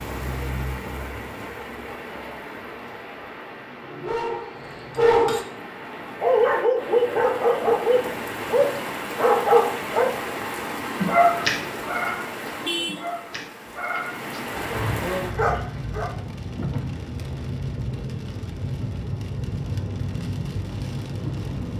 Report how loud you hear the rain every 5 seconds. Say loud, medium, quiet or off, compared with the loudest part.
medium, loud, loud, loud, loud.